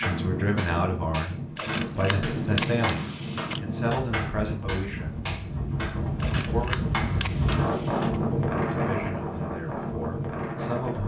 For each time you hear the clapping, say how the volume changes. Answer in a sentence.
The clapping can be heard from 0.0 to 8.1 s, at a steady volume.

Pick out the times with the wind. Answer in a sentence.
The wind can be heard from 0.0 to 11.0 s.